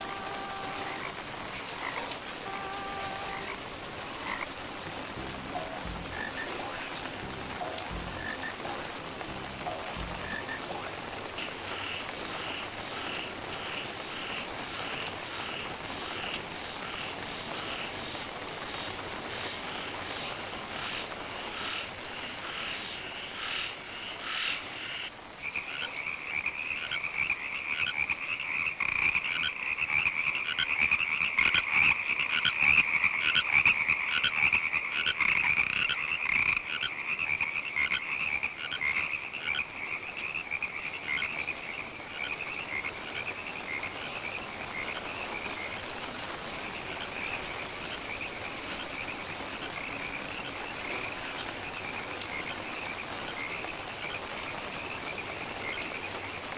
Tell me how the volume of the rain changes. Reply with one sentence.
The loudness of the rain goes down, then up.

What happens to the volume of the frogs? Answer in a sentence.
The loudness of the frogs goes up, then down.